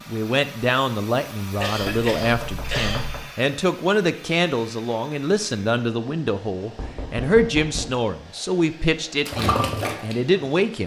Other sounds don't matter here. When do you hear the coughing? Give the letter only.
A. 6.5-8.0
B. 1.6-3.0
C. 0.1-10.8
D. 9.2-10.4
B.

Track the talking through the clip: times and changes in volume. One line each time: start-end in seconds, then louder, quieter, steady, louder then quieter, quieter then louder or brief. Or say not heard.
0.1-10.8 steady.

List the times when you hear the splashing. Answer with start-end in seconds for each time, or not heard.
9.2-10.4.